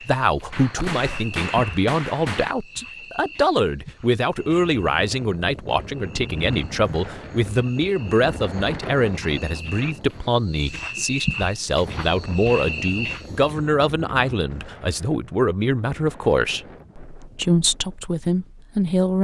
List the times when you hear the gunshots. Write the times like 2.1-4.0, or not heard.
0.5-2.5.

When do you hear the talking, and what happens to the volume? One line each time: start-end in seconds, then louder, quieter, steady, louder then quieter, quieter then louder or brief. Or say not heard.
0.1-19.1 steady.